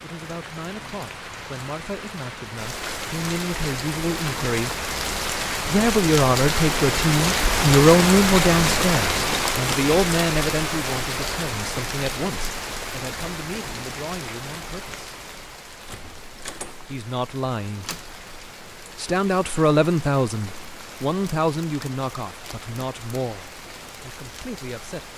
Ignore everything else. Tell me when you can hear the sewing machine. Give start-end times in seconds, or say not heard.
not heard.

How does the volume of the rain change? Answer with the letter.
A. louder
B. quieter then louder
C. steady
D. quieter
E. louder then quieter
E.